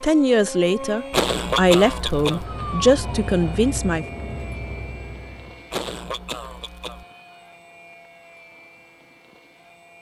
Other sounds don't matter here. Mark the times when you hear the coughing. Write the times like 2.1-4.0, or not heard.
1.1-2.5, 5.7-7.0.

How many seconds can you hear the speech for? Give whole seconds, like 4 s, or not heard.
4 s.